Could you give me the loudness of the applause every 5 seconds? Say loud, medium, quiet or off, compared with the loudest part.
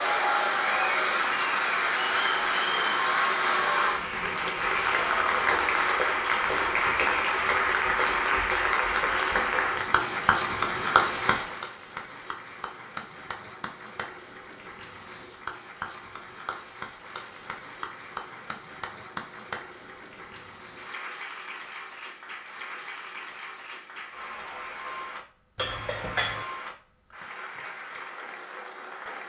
loud, loud, medium, quiet, quiet, quiet.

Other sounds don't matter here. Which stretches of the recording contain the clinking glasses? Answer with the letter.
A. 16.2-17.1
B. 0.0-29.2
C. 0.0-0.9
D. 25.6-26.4
D.